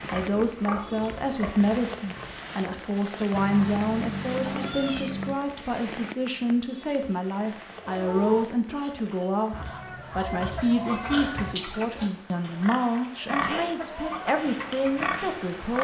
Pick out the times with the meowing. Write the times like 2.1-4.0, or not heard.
3.3-5.3, 9.5-11.6.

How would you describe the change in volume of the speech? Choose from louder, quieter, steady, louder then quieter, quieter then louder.
steady.